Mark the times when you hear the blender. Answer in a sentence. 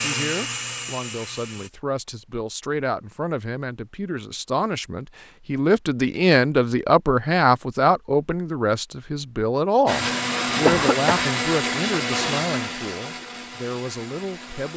You can hear the blender from 0.0 to 1.7 s and from 9.8 to 14.7 s.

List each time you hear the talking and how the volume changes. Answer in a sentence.
The talking can be heard from 0.0 to 14.7 s, getting louder then quieter.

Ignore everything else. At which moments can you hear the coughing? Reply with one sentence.
The coughing can be heard from 10.7 to 11.2 s.